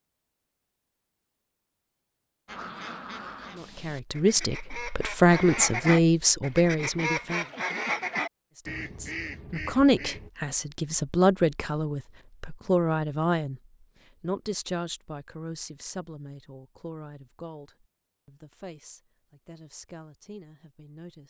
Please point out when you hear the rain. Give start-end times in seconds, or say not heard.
not heard.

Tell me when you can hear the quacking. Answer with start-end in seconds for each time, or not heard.
2.5-10.3.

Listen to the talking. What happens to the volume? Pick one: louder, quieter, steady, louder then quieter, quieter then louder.
quieter.